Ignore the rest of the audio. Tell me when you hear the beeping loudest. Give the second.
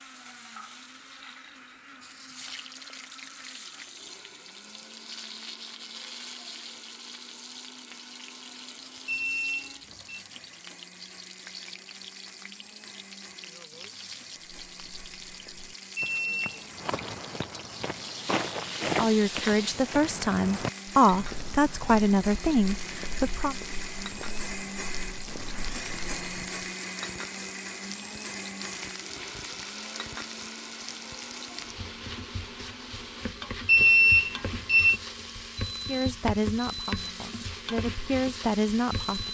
34 s.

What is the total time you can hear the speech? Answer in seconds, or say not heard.
8 s.